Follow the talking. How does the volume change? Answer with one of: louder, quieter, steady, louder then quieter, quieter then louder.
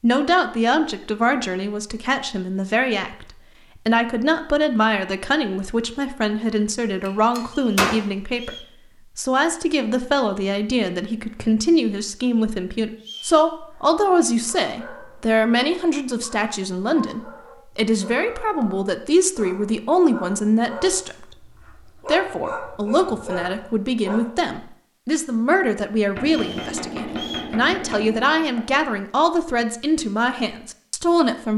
steady.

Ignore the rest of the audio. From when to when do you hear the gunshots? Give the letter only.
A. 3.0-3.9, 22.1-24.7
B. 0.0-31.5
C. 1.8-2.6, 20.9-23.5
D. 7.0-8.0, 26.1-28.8
D.